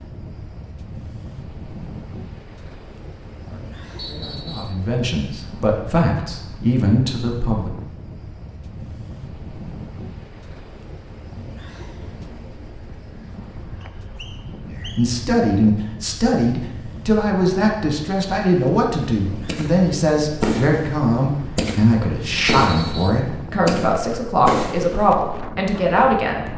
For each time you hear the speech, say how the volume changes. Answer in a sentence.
You can hear the speech from 3.5 to 7.7 s, getting louder; and from 14.7 to 26.5 s, at a steady volume.